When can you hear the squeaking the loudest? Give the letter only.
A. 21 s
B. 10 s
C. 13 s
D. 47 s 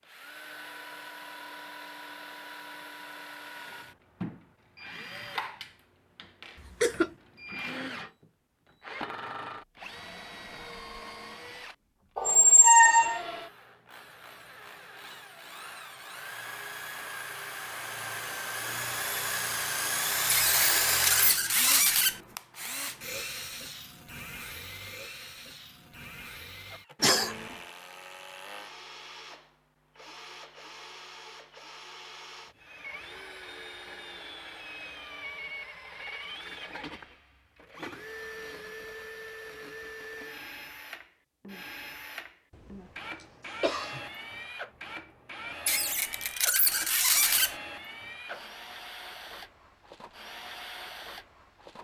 C.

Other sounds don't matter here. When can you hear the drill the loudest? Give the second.
21 s.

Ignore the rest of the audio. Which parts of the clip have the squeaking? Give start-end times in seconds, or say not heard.
12.2-13.2, 20.3-22.1, 45.6-47.5.